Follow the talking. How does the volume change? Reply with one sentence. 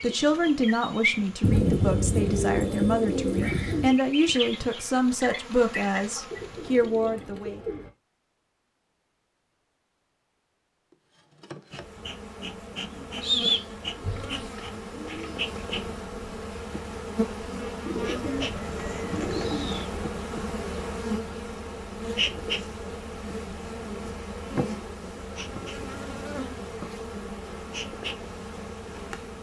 The volume of the talking stays about the same.